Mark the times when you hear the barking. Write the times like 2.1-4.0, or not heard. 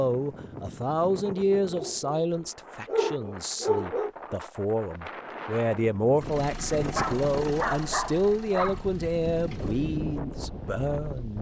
1.2-2.2, 2.9-4.1, 6.9-8.8.